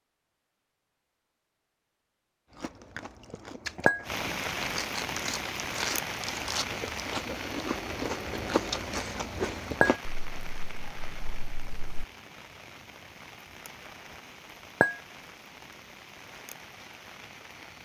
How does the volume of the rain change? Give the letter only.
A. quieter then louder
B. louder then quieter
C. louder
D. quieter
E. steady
D.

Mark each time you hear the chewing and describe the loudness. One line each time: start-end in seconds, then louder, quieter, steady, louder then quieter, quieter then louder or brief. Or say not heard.
2.5-12.1 louder then quieter.